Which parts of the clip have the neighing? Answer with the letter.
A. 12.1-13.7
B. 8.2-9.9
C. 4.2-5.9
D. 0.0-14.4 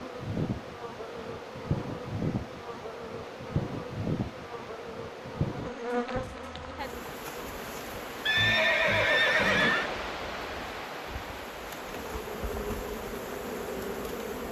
B.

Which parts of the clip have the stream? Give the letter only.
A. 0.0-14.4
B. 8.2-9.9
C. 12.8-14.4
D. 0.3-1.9
A.